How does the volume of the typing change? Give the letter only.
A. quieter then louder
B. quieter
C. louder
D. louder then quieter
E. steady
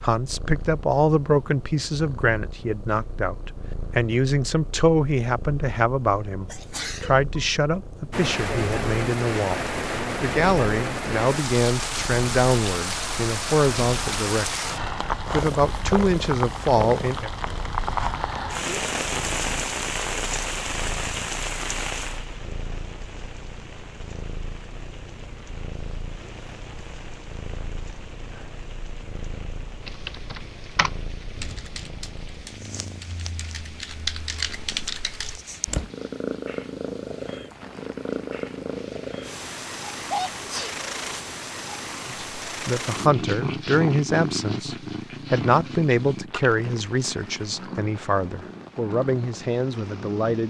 A.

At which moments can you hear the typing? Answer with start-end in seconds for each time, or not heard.
29.9-35.9.